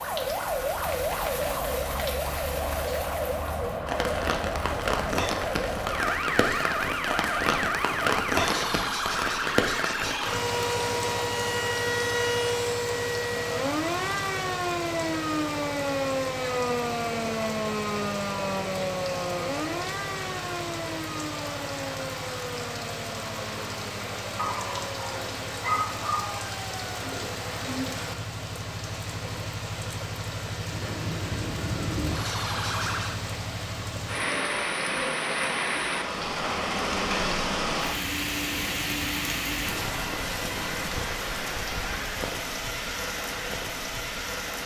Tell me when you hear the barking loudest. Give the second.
26 s.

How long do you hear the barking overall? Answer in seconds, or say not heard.
2 s.